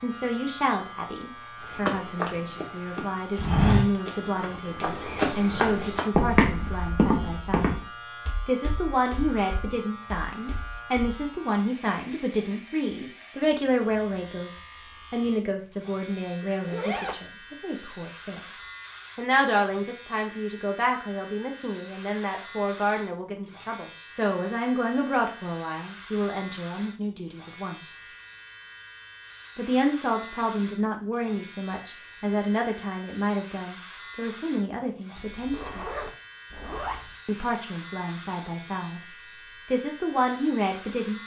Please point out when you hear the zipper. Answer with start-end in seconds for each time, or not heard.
16.4-17.2, 35.2-37.1.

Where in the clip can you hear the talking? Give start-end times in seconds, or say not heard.
0.0-7.8, 8.4-28.1, 29.6-35.9, 37.2-39.0, 39.7-41.2.